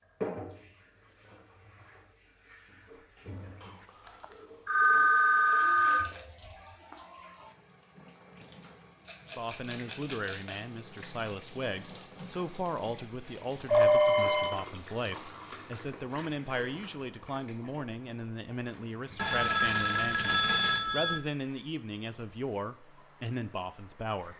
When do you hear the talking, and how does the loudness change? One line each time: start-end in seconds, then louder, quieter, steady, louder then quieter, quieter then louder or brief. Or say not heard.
9.3-24.3 steady.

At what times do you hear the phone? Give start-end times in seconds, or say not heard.
3.6-6.1, 13.7-14.6, 19.1-21.2.